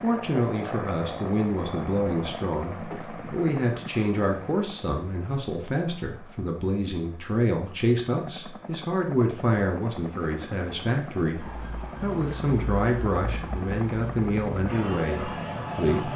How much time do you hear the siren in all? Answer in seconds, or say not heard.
5 s.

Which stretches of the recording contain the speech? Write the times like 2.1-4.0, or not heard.
0.0-16.1.